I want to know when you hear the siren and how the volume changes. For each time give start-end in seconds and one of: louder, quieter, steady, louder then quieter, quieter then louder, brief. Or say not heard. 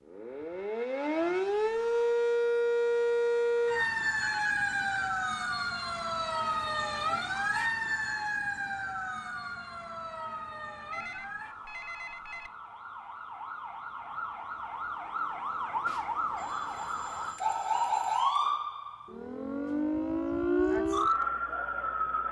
0.1-22.2 quieter then louder.